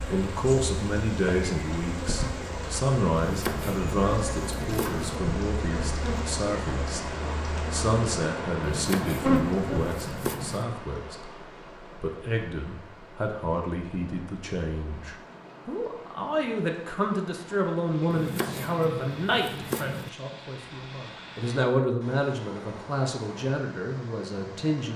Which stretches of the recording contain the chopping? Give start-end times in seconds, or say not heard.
3.1-5.2, 8.6-10.7, 18.1-20.1.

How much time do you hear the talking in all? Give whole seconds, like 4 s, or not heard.
25 s.